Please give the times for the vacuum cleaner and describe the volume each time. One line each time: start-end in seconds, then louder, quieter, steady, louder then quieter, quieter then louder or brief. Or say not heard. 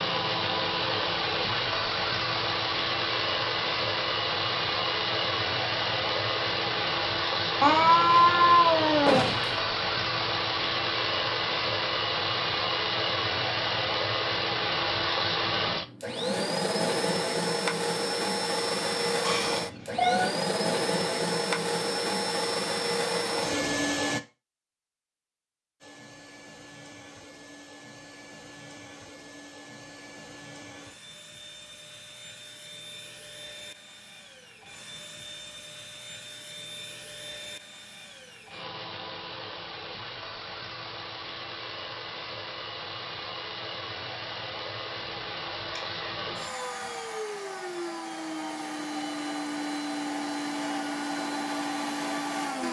0.0-24.2 steady
25.8-52.6 louder.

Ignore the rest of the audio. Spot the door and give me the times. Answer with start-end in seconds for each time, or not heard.
9.1-9.6.